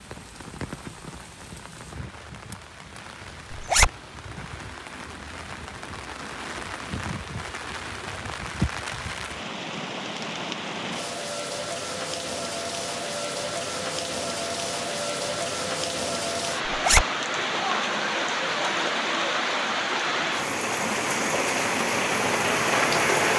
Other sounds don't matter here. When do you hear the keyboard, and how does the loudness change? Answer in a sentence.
You can't hear the keyboard here.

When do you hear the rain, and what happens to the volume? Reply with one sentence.
The rain can be heard from 0.0 to 23.3 s, getting louder.